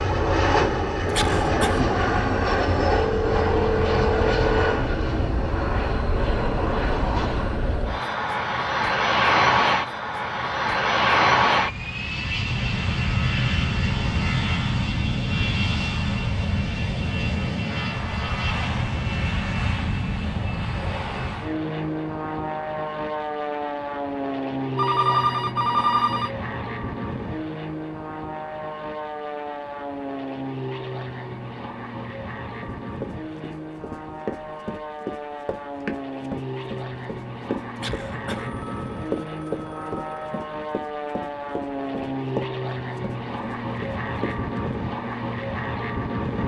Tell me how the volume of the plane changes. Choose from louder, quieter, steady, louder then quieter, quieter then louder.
quieter.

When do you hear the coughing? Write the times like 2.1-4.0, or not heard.
1.1-1.9, 37.8-38.5.